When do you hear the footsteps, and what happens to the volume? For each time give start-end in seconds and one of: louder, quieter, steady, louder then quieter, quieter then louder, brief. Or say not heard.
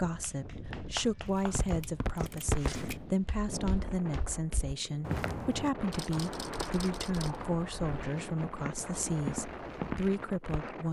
1.4-10.7 quieter then louder.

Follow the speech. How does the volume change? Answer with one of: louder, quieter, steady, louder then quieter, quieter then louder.
steady.